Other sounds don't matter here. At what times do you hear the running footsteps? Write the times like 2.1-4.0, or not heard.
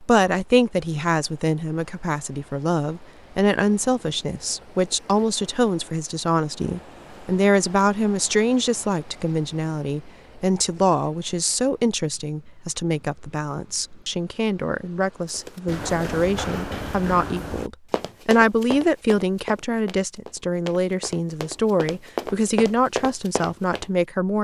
15.3-23.9.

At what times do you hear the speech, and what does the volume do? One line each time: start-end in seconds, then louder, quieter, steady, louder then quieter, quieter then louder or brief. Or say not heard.
0.0-24.3 steady.